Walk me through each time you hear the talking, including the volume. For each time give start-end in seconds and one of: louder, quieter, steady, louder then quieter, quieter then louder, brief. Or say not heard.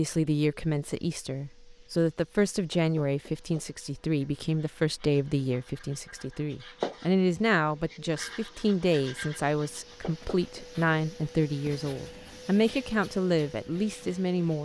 0.0-14.6 steady.